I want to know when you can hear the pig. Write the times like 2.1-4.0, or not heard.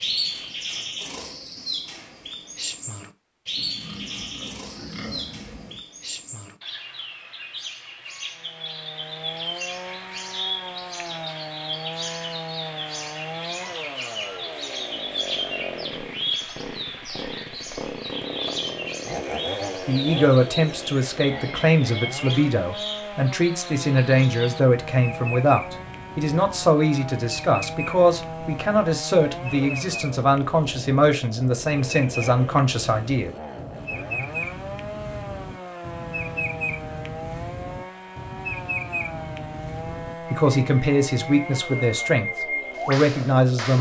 3.5-5.8.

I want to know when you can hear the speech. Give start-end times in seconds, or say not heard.
19.9-33.3, 39.8-43.7.